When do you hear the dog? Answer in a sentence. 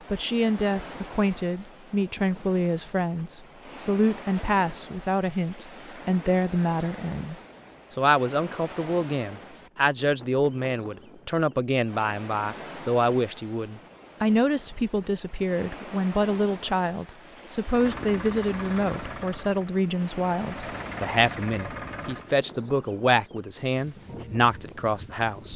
You can't hear the dog here.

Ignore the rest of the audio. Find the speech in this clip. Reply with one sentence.
You can hear the speech from 0.1 to 25.5 s.